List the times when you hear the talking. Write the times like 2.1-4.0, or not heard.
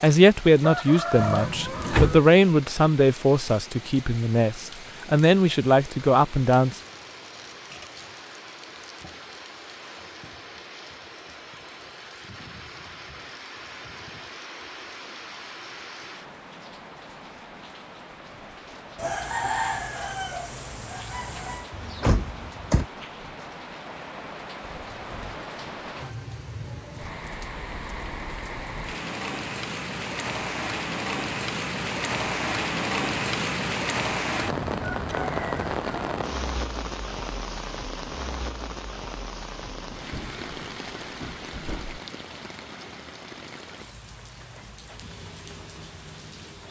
0.0-6.8.